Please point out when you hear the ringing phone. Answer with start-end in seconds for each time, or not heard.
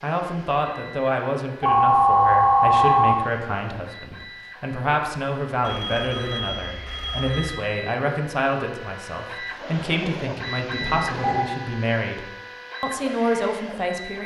1.6-3.1, 5.6-7.5, 10.8-11.5.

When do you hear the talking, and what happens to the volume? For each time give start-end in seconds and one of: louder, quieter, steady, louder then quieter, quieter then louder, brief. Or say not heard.
0.0-14.2 steady.